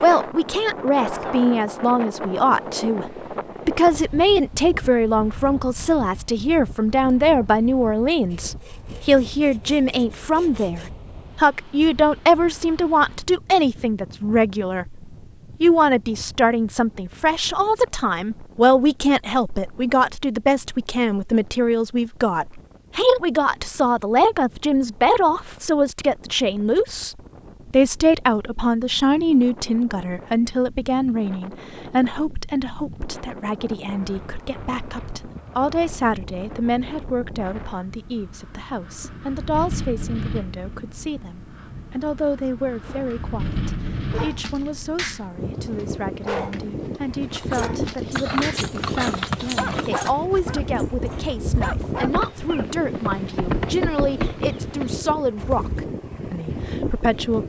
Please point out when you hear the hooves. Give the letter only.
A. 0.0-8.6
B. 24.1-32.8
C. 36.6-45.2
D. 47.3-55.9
D.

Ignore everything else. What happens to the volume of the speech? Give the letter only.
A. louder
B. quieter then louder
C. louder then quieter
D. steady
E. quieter
E.